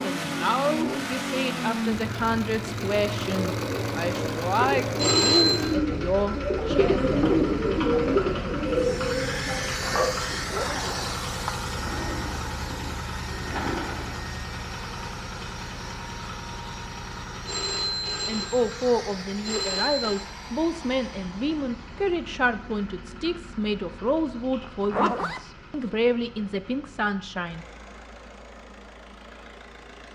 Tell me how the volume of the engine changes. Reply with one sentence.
The volume of the engine goes down.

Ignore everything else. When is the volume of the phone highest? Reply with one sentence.
The volume of the phone peaks at 5 seconds.